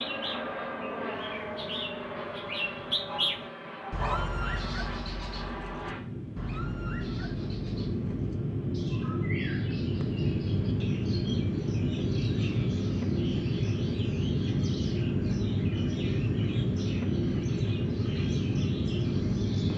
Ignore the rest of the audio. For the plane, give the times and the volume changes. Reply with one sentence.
The plane can be heard from 0.0 to 19.7 s, getting louder.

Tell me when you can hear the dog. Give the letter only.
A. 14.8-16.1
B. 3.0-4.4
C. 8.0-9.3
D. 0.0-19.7
B.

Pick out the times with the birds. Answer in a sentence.
The birds can be heard from 0.0 to 19.7 s.